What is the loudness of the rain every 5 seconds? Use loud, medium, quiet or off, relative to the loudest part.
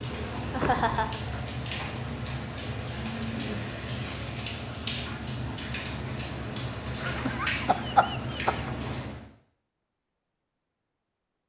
loud, loud, off.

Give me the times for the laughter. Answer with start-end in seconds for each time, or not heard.
0.5-1.2, 7.0-8.7.